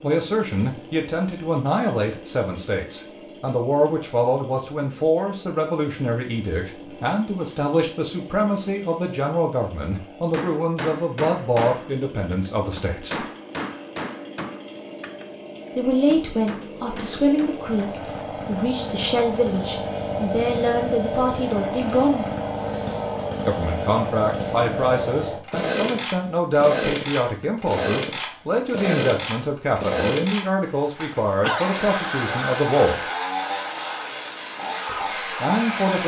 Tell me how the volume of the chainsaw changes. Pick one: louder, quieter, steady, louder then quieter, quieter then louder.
louder.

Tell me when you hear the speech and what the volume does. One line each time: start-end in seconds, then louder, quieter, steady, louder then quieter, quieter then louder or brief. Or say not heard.
0.0-13.2 steady
15.8-22.2 steady
23.4-33.0 steady
34.9-36.0 brief.